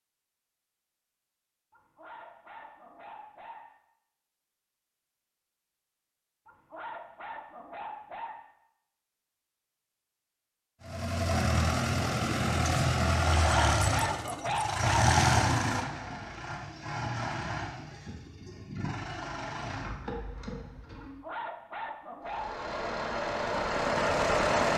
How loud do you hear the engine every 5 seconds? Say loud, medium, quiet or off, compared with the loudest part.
off, off, loud, loud, loud.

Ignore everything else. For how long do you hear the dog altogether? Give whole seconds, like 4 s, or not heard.
7 s.